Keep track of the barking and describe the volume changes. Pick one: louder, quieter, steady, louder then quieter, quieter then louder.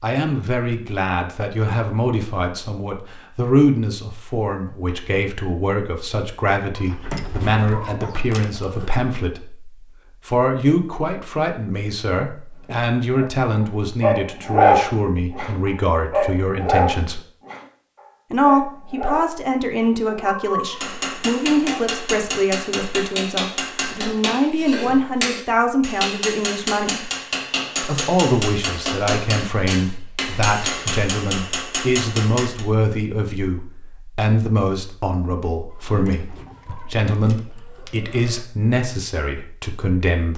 louder then quieter.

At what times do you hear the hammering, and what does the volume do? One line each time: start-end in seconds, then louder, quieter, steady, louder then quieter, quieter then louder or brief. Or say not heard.
20.6-32.6 steady.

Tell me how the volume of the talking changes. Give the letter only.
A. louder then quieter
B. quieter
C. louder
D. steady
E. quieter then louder
D.